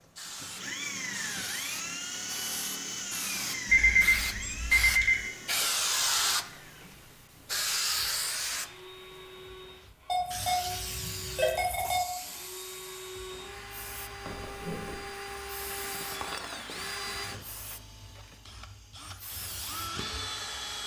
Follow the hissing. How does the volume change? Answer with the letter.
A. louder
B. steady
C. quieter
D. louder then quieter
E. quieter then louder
D.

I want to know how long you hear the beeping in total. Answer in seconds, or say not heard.
4 s.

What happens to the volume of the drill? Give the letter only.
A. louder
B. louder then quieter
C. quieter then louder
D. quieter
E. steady
C.